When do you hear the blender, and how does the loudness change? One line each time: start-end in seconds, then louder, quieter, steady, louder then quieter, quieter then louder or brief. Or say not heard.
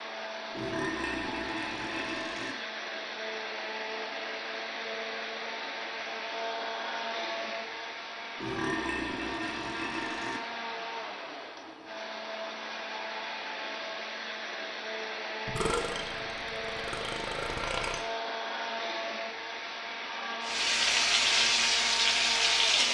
0.0-22.9 steady.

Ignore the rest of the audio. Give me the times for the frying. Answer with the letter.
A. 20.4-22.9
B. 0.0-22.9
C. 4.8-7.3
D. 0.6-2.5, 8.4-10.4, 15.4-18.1
A.